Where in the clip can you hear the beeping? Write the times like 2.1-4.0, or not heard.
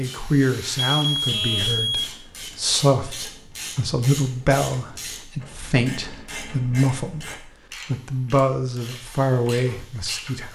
0.8-2.1.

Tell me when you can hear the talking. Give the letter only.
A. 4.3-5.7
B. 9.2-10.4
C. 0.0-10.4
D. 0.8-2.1
C.